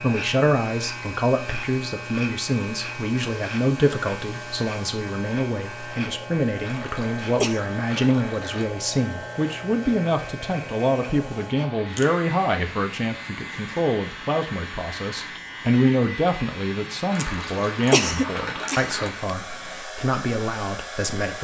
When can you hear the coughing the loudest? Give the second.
18 s.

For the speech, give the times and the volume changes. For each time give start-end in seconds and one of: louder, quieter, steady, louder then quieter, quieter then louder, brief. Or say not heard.
0.0-21.3 steady.